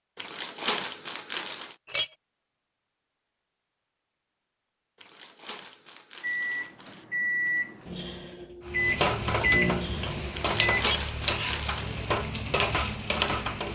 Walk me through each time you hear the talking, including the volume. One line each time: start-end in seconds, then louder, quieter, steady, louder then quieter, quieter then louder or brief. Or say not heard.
not heard.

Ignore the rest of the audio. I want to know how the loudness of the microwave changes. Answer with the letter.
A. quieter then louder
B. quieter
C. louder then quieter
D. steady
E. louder
C.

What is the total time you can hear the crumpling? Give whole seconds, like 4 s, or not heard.
5 s.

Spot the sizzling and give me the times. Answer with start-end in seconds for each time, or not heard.
8.7-13.7.